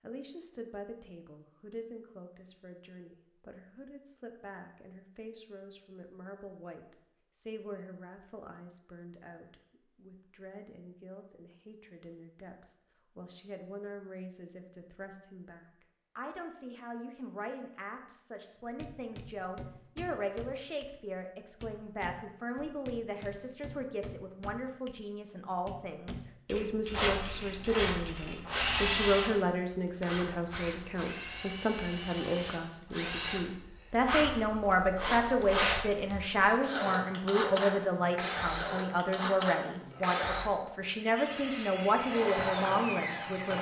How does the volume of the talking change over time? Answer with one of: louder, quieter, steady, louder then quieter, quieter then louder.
louder.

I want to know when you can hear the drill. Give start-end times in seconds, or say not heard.
26.9-43.5.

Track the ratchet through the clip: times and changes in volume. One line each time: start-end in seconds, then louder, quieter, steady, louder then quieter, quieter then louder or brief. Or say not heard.
not heard.